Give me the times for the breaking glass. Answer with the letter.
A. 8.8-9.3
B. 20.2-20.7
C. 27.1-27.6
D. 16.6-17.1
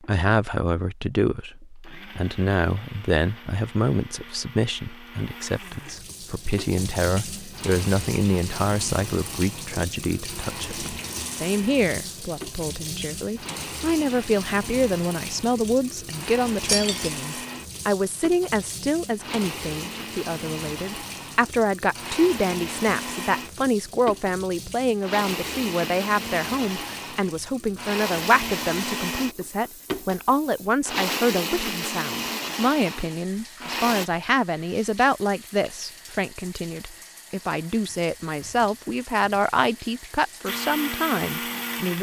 D.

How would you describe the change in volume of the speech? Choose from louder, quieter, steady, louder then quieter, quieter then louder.
steady.